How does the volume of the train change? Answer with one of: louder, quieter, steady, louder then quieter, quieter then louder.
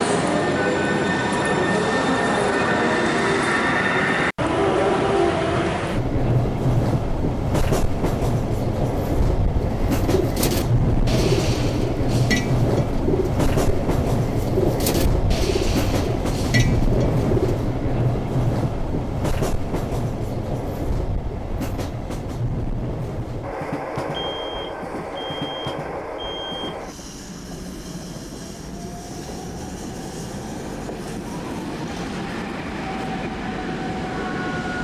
quieter.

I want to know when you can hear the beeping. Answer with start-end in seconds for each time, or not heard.
24.1-26.8.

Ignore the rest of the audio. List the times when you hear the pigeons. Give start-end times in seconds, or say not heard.
9.4-17.6.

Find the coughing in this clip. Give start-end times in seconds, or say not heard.
not heard.